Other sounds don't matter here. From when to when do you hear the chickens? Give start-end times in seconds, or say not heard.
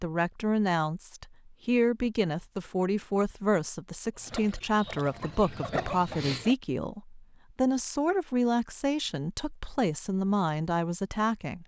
4.2-6.5.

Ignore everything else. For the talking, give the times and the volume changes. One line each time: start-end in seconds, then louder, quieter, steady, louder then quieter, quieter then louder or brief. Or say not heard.
0.0-11.6 steady.